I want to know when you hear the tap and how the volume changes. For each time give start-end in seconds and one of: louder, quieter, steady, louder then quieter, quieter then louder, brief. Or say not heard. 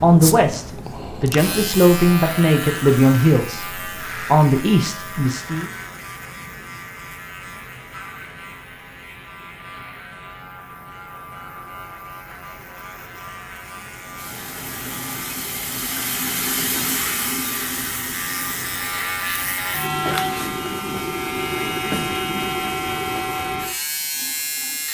14.2-24.8 quieter.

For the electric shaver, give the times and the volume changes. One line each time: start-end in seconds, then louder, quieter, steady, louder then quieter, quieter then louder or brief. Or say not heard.
0.0-24.8 quieter then louder.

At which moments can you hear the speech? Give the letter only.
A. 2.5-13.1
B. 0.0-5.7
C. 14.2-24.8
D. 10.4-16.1
B.